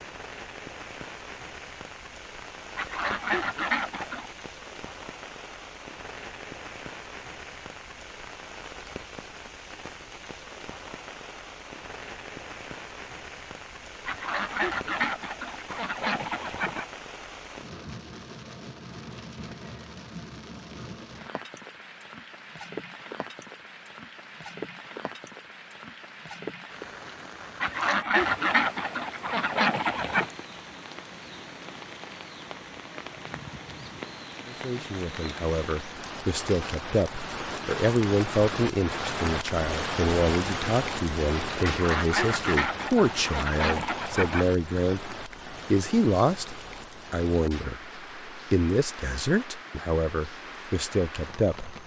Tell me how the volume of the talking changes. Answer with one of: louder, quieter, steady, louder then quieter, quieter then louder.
steady.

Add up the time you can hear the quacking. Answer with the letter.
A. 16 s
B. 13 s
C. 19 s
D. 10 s
D.